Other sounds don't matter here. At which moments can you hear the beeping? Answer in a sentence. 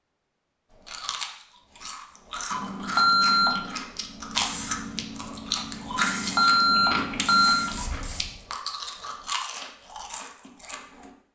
The beeping can be heard from 2.5 to 3.8 s and from 5.9 to 7.5 s.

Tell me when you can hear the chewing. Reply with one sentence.
You can hear the chewing from 0.7 to 11.1 s.